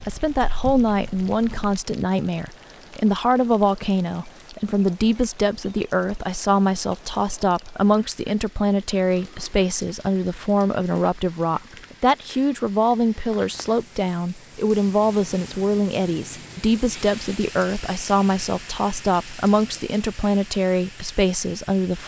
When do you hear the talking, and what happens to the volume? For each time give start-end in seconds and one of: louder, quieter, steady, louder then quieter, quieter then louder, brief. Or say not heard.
0.1-22.0 steady.